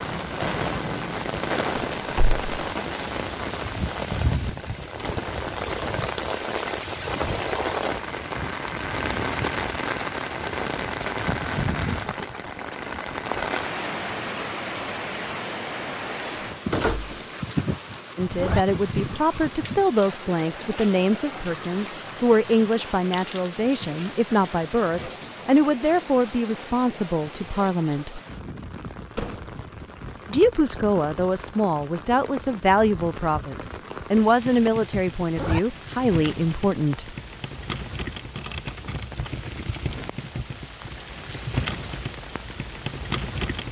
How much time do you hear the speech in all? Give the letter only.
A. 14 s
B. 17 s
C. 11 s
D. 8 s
B.